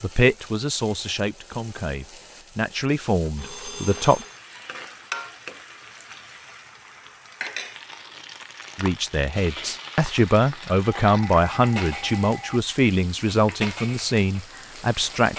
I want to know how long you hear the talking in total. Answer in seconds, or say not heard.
11 s.